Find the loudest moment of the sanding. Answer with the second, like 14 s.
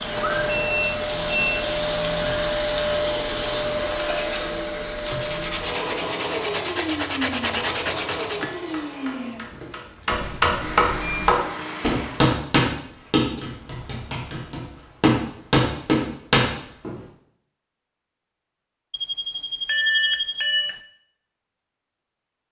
8 s.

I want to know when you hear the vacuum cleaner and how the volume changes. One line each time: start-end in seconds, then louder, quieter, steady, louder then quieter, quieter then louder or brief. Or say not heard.
0.0-12.3 quieter.